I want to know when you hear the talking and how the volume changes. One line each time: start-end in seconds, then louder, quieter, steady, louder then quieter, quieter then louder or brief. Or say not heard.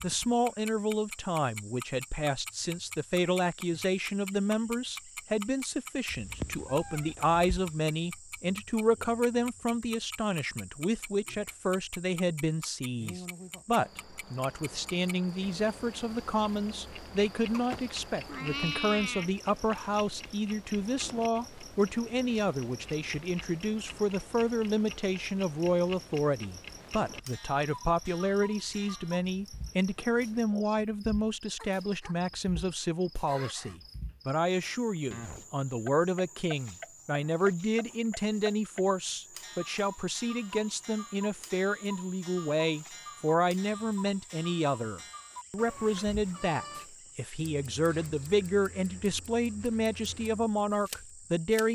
0.0-51.6 steady.